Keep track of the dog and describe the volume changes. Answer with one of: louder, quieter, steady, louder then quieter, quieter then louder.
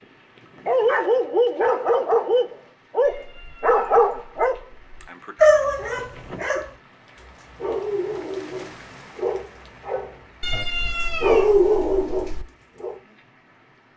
quieter then louder.